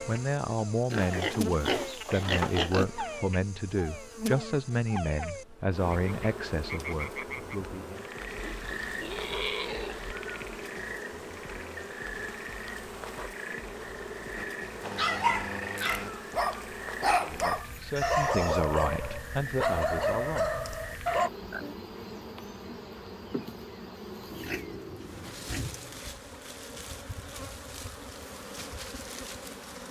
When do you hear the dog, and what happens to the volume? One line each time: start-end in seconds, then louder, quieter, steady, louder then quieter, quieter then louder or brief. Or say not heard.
14.3-21.3 steady.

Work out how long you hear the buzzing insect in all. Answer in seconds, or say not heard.
30 s.